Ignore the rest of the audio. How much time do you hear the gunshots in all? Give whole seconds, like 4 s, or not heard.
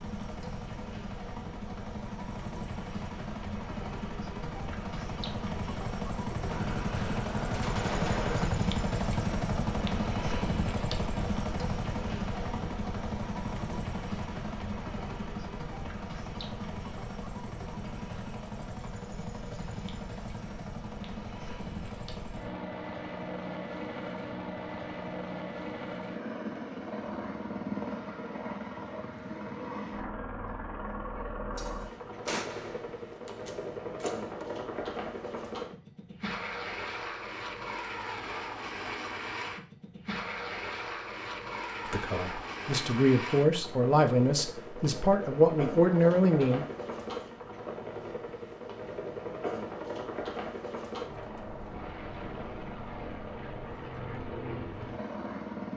5 s.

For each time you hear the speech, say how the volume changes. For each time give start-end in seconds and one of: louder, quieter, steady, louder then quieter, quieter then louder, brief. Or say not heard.
41.9-46.6 louder.